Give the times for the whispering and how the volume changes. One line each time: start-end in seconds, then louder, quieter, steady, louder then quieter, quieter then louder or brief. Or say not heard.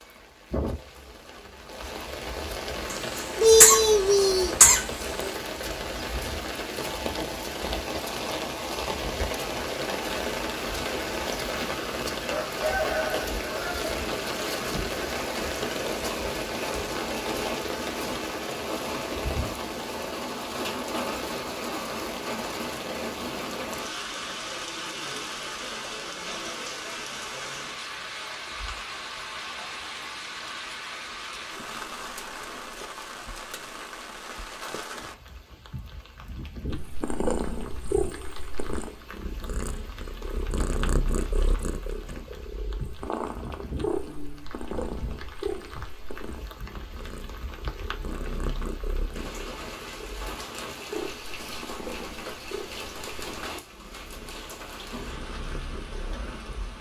not heard.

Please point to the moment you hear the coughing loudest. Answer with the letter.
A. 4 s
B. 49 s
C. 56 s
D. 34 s
A.